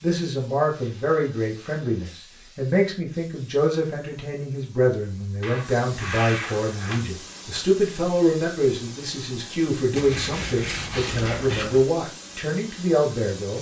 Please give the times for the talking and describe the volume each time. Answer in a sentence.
You can hear the talking from 0.0 to 13.5 s, at a steady volume.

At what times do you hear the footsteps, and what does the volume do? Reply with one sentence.
The footsteps can't be heard in this clip.